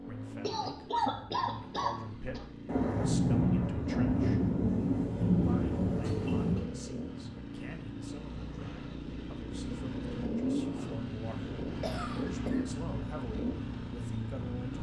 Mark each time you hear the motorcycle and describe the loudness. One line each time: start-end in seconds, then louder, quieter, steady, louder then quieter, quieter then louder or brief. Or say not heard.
0.0-14.7 louder.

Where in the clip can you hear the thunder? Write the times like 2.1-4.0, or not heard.
2.6-6.7.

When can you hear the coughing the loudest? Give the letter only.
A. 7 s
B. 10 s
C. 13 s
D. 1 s
D.